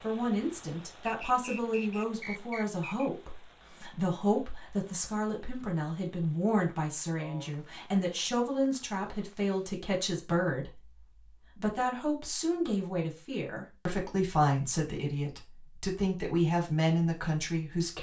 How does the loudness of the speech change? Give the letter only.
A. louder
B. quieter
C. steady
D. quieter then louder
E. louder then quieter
C.